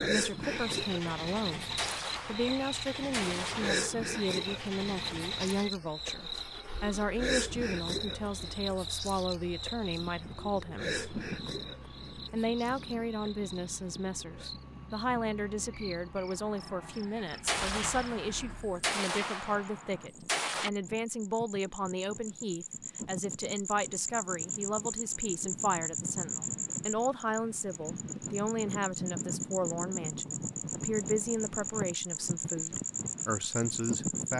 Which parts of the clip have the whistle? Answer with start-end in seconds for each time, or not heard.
not heard.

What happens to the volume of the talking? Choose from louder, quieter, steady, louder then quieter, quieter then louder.
steady.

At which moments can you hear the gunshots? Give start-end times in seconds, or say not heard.
1.8-4.1, 17.4-20.7.